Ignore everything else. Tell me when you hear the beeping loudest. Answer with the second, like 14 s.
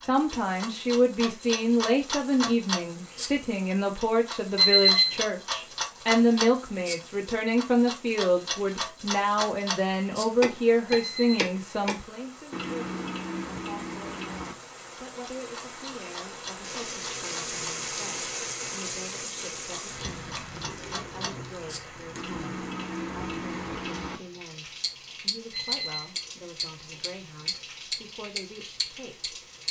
5 s.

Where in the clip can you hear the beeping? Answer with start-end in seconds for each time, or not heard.
4.5-5.2, 10.9-11.4, 25.5-26.1.